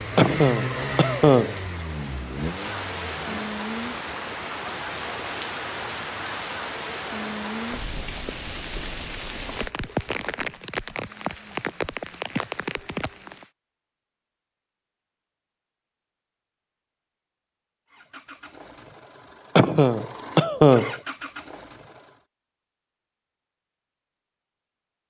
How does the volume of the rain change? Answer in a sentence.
The loudness of the rain stays about the same.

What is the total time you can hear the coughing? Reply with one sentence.
You can hear the coughing for 3 seconds altogether.